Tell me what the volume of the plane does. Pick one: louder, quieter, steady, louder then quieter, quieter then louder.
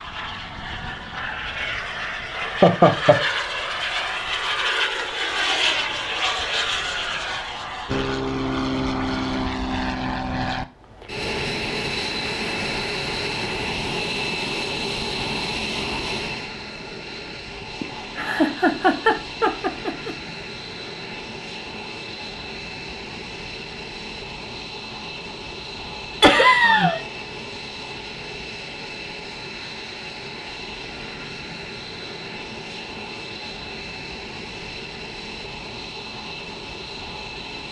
quieter.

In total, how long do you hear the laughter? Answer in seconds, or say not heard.
4 s.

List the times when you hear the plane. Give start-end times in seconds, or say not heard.
0.0-37.6.